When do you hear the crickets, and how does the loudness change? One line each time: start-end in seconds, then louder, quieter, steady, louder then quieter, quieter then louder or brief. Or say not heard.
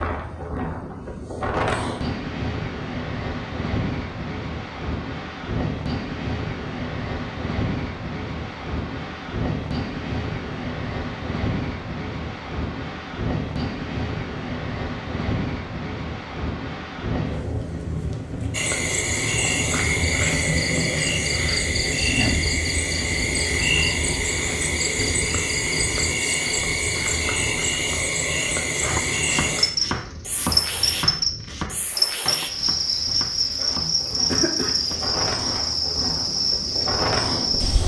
18.5-37.8 steady.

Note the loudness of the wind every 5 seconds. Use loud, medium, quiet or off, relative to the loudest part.
loud, loud, loud, loud, loud, medium, quiet, loud.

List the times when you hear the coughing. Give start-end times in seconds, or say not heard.
34.0-34.8.